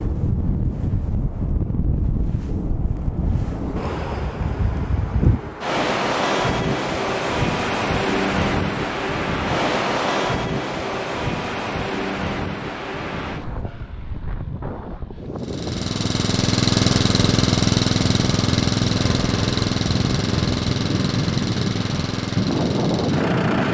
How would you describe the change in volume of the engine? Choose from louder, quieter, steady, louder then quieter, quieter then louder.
quieter.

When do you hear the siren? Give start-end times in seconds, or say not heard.
not heard.